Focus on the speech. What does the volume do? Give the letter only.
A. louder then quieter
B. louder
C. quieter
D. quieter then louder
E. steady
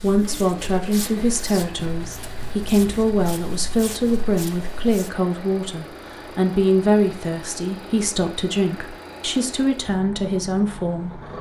E.